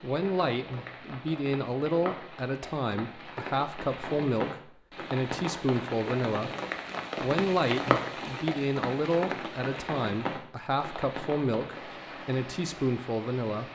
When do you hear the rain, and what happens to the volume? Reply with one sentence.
You can hear the rain from 0.0 to 13.7 s, getting louder then quieter.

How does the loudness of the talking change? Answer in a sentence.
The loudness of the talking stays about the same.